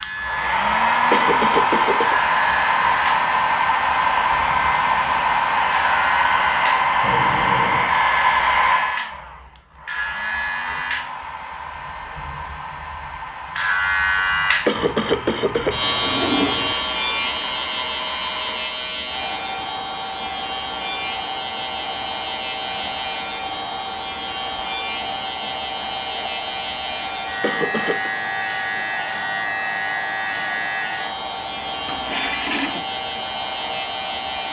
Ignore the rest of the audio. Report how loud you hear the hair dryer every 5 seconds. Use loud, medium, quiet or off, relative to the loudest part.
loud, loud, quiet, quiet, quiet, quiet, quiet.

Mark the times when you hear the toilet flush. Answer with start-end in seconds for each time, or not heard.
7.0-8.0, 14.8-16.8, 31.9-32.9.